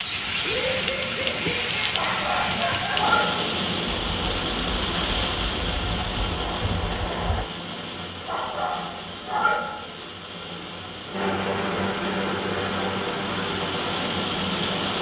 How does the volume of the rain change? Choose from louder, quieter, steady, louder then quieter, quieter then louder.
quieter then louder.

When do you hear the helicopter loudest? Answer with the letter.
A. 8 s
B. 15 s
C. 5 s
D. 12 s
D.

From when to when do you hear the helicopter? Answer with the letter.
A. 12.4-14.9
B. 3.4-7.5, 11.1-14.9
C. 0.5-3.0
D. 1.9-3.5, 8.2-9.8
B.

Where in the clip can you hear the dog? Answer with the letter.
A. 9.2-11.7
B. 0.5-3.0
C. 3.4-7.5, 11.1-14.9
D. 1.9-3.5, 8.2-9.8
D.